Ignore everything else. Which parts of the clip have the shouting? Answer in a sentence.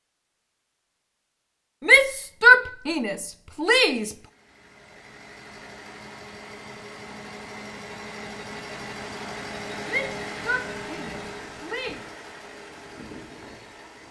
The shouting can be heard from 1.9 to 4.1 s and from 9.8 to 12.0 s.